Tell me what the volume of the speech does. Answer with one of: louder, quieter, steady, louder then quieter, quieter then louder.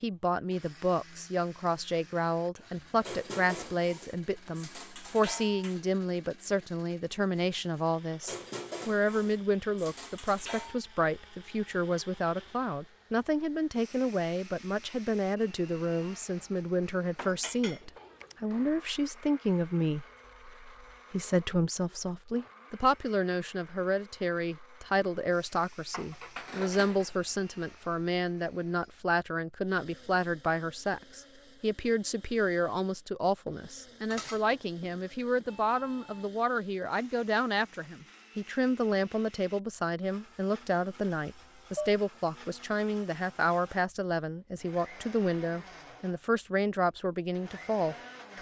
steady.